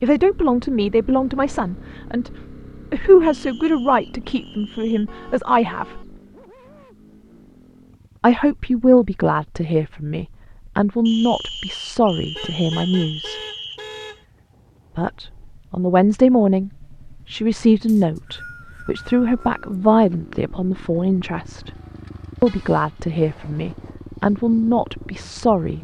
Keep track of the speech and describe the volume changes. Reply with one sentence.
The volume of the speech stays about the same.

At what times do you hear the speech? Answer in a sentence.
The speech can be heard from 0.0 to 6.0 s, from 8.2 to 13.4 s, from 14.9 to 21.7 s and from 22.4 to 25.7 s.